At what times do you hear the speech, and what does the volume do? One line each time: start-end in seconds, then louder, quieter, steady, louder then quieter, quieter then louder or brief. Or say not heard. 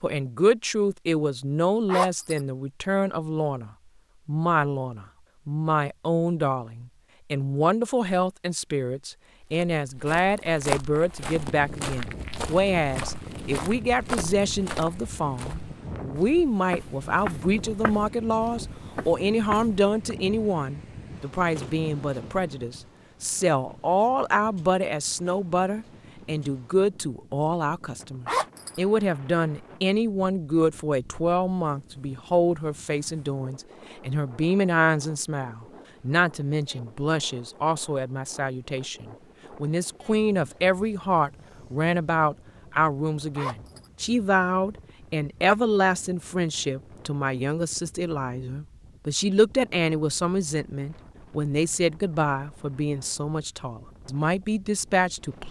0.0-55.4 steady.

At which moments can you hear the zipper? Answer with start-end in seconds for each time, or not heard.
1.9-2.4, 28.2-28.8, 43.4-43.9.